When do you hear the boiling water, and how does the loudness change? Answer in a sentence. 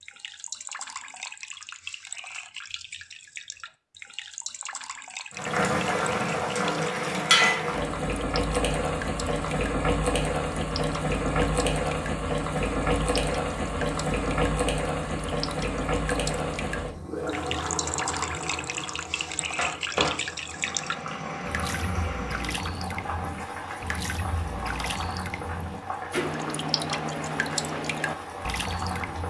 You can hear the boiling water from 5.3 to 29.2 s, getting quieter.